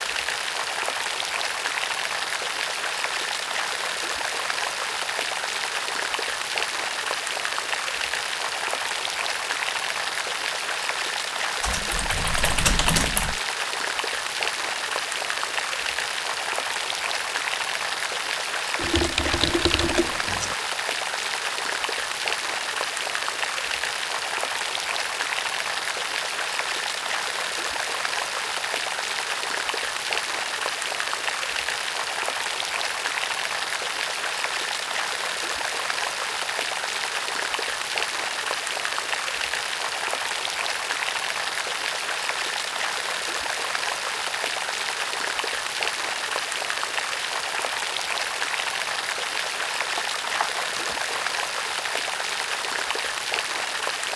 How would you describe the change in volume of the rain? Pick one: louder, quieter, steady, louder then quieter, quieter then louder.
steady.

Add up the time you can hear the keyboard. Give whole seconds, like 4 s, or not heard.
5 s.